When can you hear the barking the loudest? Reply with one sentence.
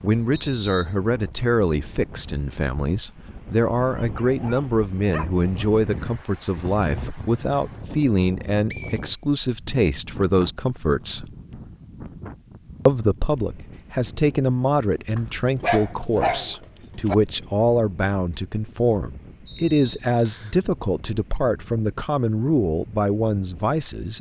The loudest moment of the barking is at 16 seconds.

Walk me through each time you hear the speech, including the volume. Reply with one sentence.
The speech can be heard from 0.0 to 11.3 s, at a steady volume; and from 12.8 to 24.1 s, at a steady volume.